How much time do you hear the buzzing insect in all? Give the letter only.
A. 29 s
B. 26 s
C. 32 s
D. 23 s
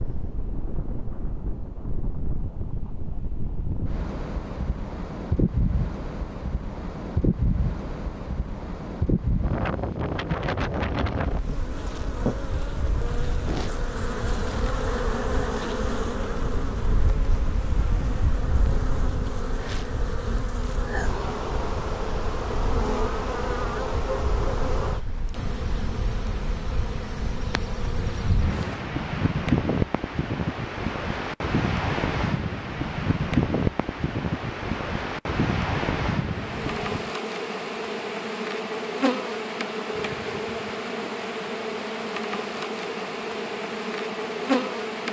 B.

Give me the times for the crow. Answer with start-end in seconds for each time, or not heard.
not heard.